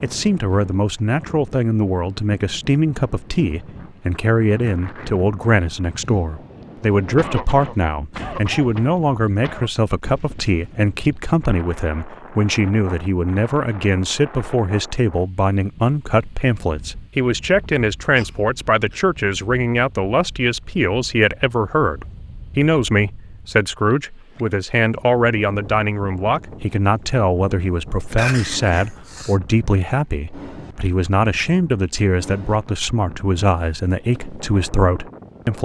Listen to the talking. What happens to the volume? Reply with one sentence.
The volume of the talking stays about the same.